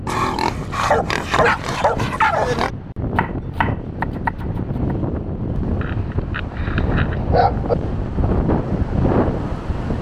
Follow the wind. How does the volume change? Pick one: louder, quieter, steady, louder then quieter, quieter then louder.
louder.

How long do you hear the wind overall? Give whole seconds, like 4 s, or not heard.
10 s.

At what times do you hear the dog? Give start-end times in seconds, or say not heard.
0.1-2.7, 5.8-7.8.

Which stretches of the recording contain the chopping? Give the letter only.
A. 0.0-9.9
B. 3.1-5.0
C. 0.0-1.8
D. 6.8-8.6
B.